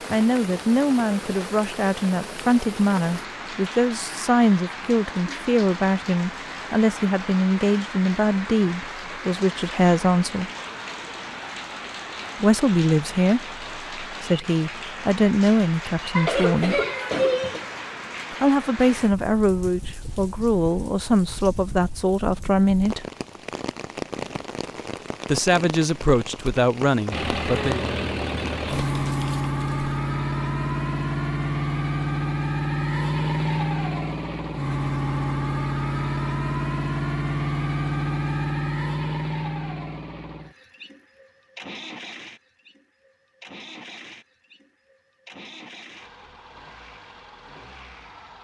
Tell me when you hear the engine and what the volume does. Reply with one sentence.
The engine can be heard from 27.1 to 48.3 s, getting quieter.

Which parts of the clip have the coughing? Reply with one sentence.
The coughing can be heard from 16.1 to 17.6 s.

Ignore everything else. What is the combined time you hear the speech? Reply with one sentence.
You can hear the speech for 22 seconds altogether.